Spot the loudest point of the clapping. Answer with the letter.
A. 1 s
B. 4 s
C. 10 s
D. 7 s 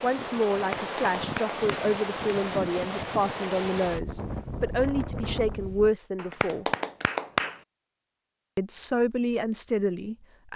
D.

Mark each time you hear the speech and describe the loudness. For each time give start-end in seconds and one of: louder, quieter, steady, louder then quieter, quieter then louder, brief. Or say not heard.
0.0-6.7 steady
8.6-10.5 brief.